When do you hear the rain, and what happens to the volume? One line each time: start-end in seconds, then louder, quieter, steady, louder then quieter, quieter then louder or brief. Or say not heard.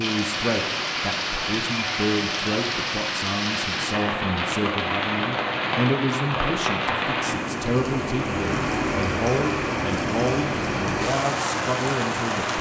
0.0-12.5 steady.